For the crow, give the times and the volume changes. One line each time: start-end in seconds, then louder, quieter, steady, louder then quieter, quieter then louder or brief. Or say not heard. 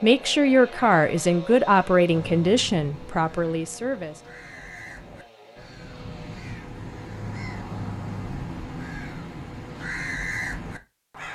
2.0-11.3 louder.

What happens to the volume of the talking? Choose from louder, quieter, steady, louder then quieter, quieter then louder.
quieter.